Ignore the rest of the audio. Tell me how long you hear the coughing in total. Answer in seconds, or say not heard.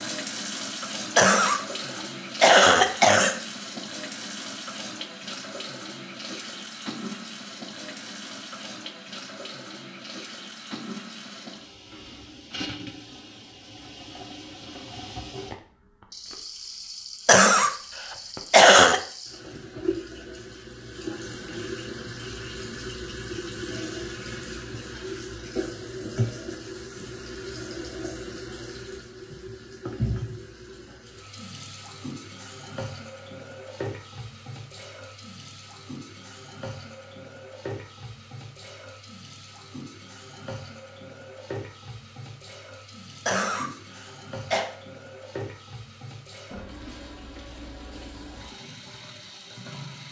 4 s.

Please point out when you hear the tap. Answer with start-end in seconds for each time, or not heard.
0.0-50.0.